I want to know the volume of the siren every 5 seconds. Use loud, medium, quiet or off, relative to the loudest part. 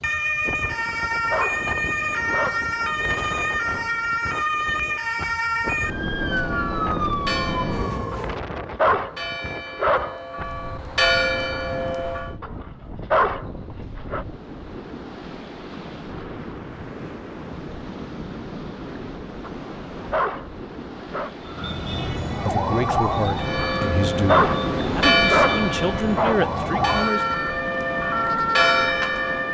loud, loud, off, off, loud, loud.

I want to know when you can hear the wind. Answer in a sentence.
You can hear the wind from 0.0 to 29.4 s.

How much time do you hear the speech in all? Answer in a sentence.
The speech can be heard for 5 seconds in total.